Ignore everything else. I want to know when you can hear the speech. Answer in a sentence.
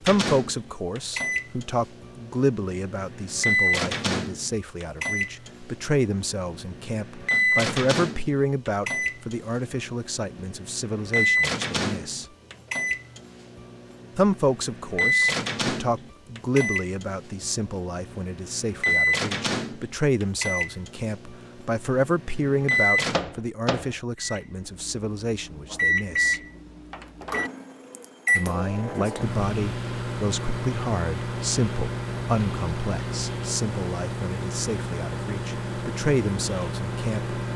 You can hear the speech from 0.0 to 12.2 s, from 14.2 to 26.4 s and from 28.4 to 37.4 s.